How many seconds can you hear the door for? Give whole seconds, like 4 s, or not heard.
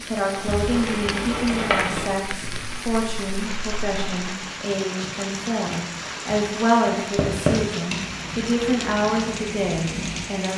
2 s.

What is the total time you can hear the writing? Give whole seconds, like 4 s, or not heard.
9 s.